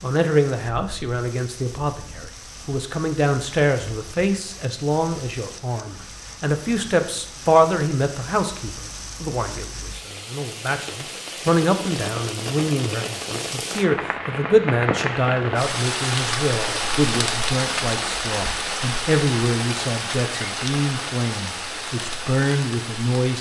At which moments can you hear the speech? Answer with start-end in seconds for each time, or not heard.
0.0-23.3.